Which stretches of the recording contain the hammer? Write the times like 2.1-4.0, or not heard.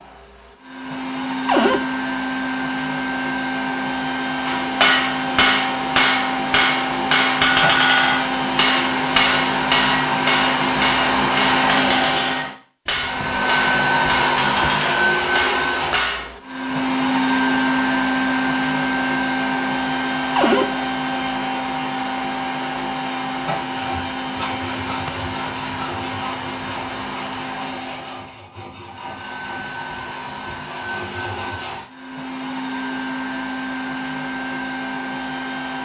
4.5-16.3.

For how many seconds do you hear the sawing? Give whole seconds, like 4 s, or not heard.
8 s.